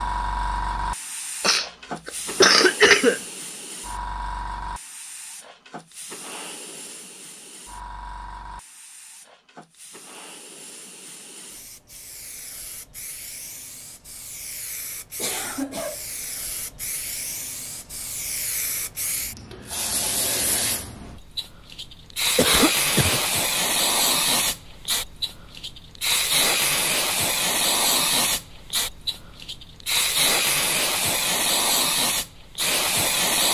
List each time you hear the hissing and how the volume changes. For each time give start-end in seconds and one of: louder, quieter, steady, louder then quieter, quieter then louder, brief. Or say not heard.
0.0-33.4 quieter then louder.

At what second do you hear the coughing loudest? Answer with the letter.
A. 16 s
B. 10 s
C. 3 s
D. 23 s
C.